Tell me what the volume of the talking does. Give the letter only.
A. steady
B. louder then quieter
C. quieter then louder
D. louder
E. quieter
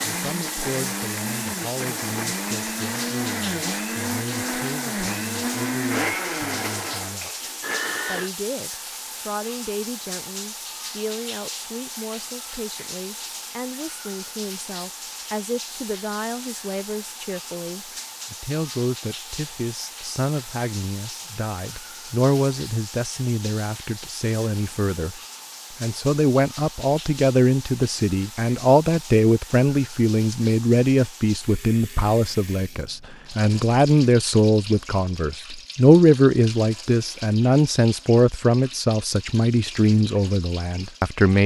D.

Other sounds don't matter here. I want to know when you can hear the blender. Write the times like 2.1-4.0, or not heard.
0.0-8.3.